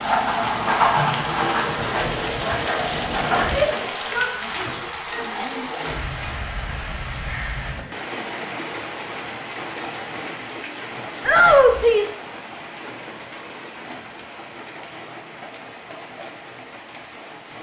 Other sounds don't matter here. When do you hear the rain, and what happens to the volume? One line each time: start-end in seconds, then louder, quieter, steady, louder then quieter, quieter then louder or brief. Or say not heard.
0.0-17.5 quieter.